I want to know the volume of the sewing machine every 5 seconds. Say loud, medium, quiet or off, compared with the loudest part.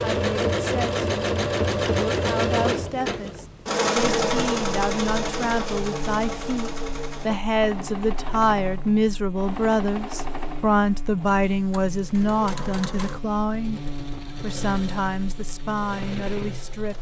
loud, medium, quiet, quiet.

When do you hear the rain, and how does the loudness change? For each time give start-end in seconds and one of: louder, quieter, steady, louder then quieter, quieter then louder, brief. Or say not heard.
not heard.